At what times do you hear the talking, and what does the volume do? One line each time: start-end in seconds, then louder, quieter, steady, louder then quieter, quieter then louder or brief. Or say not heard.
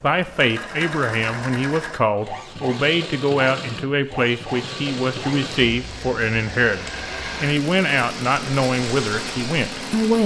0.0-10.2 steady.